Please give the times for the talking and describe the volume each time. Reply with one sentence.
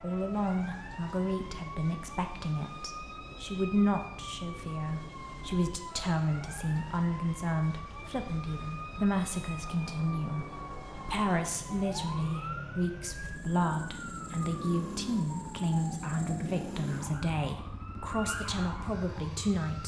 The talking can be heard from 0.0 to 19.8 s, at a steady volume.